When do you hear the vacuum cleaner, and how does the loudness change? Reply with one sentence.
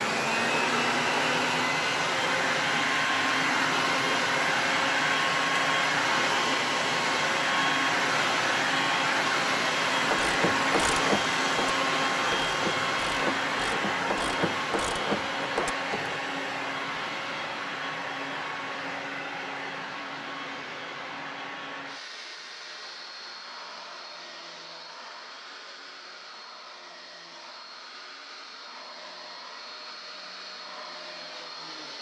The vacuum cleaner can be heard from 0.0 to 31.9 s, getting quieter.